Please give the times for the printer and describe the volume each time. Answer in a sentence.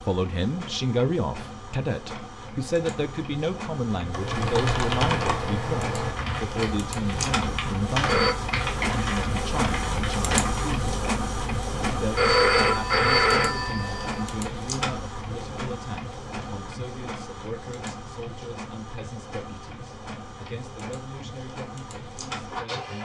The printer can be heard from 0.0 to 23.0 s, getting louder then quieter.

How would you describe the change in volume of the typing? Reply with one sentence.
The loudness of the typing goes down.